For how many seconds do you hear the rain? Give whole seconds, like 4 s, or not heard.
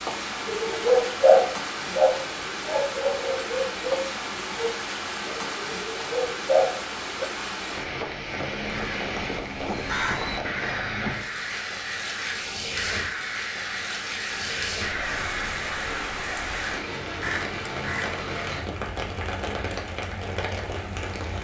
21 s.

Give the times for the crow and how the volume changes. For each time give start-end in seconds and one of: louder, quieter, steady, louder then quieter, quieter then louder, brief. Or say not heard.
8.6-18.2 steady.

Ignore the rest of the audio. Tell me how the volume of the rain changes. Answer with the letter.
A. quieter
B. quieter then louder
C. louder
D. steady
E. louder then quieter
D.